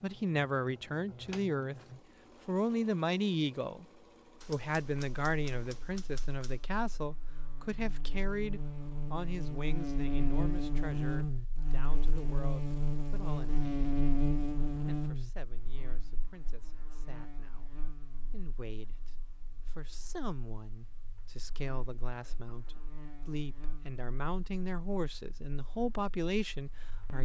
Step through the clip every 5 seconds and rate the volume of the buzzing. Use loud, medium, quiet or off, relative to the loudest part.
off, medium, loud, quiet, quiet, quiet.